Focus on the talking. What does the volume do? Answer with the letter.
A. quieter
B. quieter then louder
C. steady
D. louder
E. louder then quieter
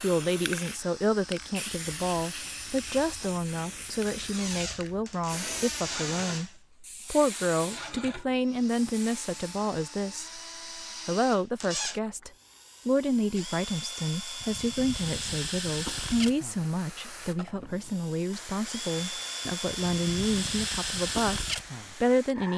C.